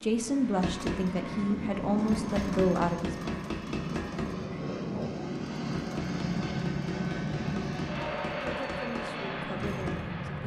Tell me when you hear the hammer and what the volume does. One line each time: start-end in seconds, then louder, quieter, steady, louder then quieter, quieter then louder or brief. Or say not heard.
0.6-10.1 quieter.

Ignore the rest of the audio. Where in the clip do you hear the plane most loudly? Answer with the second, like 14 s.
7 s.